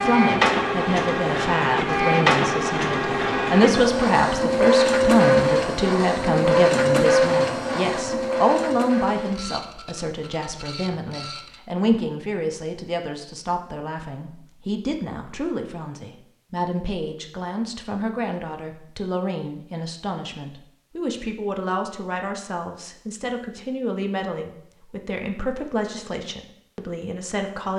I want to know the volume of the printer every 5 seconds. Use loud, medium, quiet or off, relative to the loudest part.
loud, loud, quiet, off, off, off.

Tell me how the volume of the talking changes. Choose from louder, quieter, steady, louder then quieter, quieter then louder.
quieter.